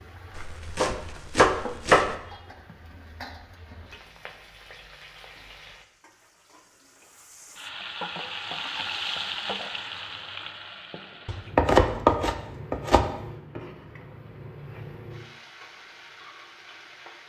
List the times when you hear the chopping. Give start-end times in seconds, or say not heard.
0.3-2.1, 11.2-13.2.